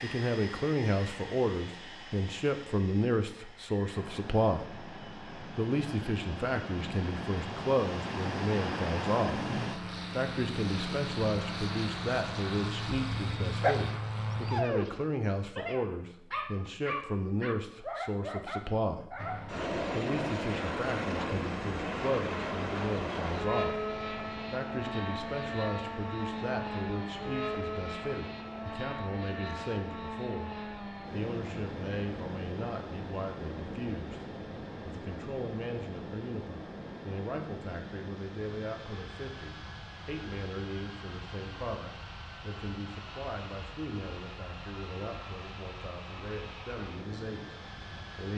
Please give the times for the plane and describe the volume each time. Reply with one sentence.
The plane can be heard from 0.0 to 14.7 s, getting louder; and from 19.1 to 48.3 s, getting quieter.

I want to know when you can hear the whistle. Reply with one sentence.
You can't hear the whistle here.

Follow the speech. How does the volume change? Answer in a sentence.
The loudness of the speech goes down.